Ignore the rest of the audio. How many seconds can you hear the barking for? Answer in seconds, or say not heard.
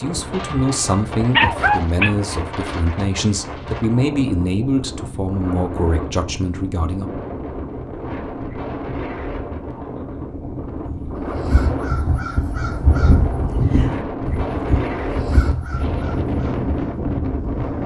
2 s.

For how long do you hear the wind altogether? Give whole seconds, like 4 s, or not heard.
18 s.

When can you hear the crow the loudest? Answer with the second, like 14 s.
13 s.